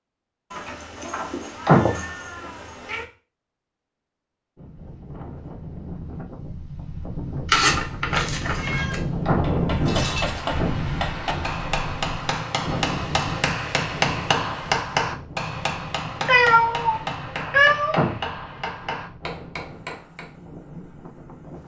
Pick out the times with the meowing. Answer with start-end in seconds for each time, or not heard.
0.5-3.0, 7.5-9.0, 16.2-18.1.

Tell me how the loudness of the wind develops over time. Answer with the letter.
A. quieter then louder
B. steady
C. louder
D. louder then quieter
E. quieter
D.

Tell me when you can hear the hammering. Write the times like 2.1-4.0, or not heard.
9.4-20.3.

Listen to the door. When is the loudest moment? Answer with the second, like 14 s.
2 s.